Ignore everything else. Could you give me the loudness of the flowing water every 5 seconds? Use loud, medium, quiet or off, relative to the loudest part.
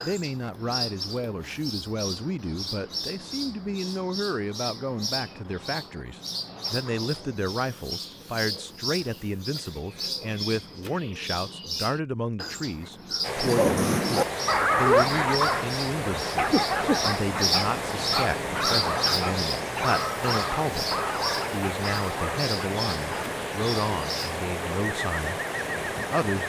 off, off, loud, loud, loud, loud.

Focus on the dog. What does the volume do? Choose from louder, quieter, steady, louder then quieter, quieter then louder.
quieter.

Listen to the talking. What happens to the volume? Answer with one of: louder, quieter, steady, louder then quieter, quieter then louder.
steady.